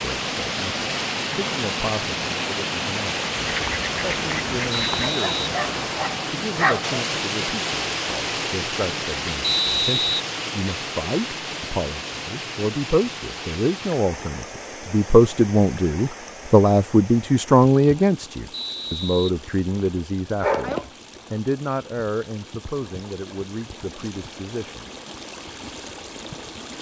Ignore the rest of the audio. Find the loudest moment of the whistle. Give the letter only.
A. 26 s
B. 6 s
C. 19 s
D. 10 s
D.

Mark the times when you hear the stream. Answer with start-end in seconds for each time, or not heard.
0.0-26.7.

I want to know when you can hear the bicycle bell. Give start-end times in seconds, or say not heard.
not heard.